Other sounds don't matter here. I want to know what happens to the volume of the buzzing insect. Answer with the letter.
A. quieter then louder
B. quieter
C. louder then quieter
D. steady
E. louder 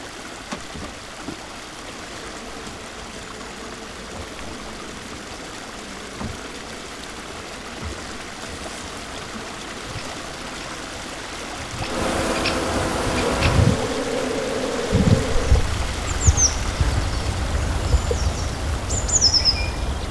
E.